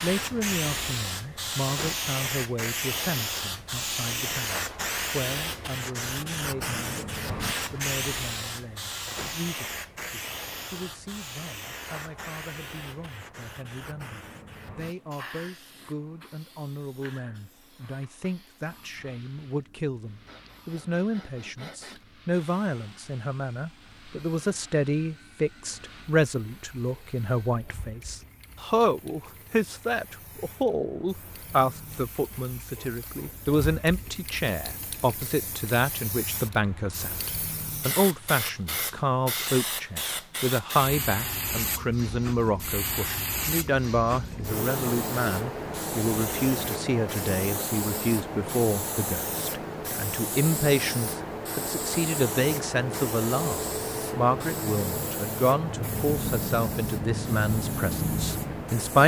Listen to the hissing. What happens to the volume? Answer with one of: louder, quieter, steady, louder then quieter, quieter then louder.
quieter then louder.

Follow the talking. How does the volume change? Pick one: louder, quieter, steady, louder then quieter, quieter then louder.
louder.